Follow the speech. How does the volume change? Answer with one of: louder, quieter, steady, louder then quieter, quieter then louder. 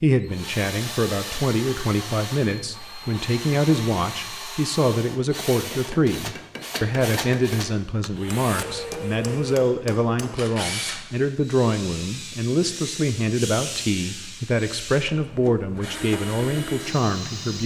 steady.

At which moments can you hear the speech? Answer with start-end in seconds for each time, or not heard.
0.0-17.6.